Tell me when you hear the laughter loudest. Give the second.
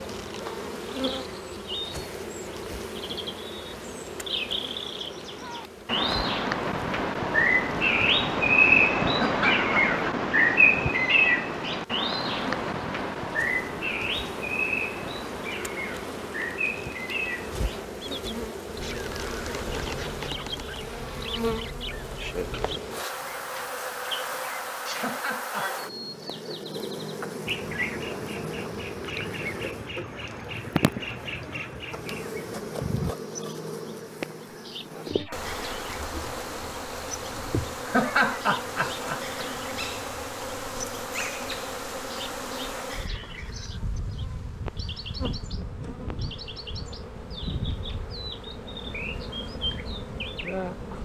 38 s.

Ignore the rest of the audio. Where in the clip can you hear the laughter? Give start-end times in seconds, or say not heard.
9.1-10.2, 24.9-25.7, 37.9-39.4.